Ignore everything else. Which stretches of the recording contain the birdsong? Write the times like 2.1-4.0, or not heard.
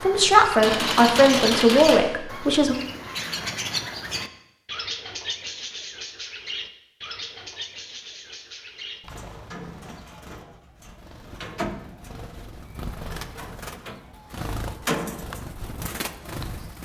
0.0-16.8.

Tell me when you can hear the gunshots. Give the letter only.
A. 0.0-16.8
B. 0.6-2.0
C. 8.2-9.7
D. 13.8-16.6
B.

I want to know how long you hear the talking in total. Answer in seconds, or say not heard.
3 s.